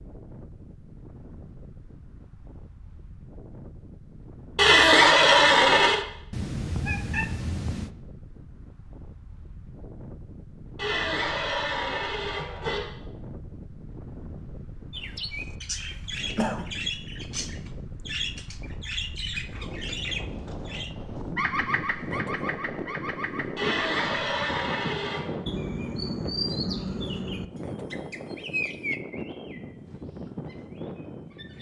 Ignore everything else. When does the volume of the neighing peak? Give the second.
5 s.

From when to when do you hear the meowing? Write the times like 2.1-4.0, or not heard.
6.3-7.9.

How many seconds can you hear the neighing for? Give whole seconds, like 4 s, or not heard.
5 s.